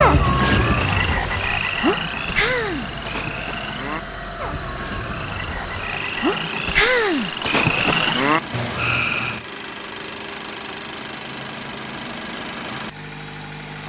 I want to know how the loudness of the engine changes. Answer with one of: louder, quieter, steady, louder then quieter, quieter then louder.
steady.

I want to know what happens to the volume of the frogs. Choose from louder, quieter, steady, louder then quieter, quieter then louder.
quieter then louder.